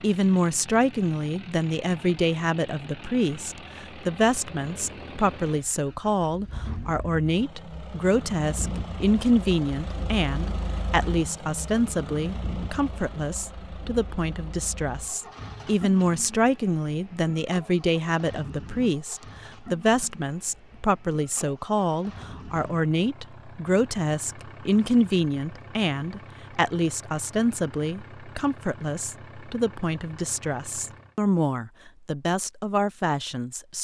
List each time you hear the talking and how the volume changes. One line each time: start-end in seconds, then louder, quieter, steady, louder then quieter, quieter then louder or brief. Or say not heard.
0.0-33.7 steady.